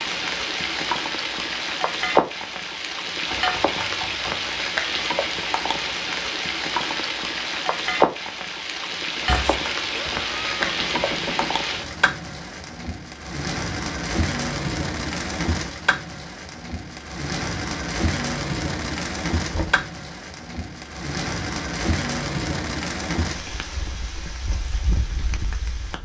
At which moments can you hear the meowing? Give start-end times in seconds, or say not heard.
9.2-11.2.